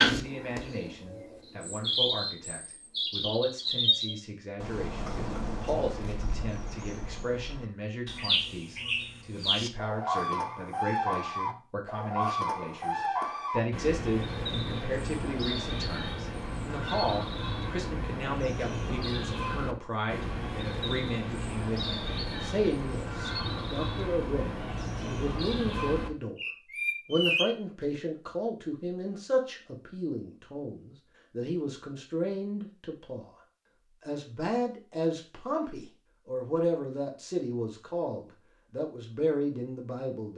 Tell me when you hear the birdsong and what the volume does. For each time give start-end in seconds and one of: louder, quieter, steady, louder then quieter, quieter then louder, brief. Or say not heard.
0.0-27.5 steady.